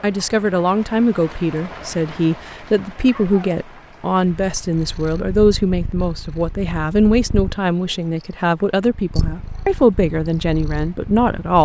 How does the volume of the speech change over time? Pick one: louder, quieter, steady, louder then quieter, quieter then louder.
steady.